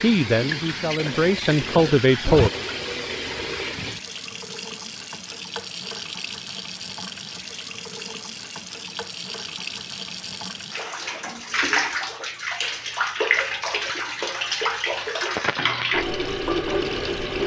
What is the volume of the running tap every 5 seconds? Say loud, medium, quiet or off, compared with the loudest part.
medium, medium, loud, loud.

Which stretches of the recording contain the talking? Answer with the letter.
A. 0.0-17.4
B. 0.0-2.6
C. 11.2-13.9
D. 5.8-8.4
B.